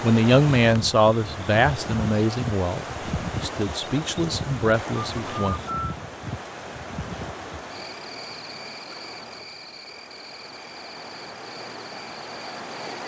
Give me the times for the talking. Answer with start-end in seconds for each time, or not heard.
0.0-5.5.